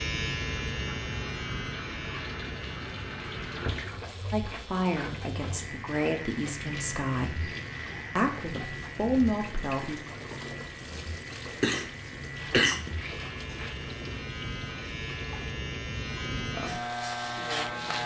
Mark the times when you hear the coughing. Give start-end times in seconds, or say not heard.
11.4-12.8.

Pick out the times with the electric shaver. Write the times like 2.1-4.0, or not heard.
0.0-18.0.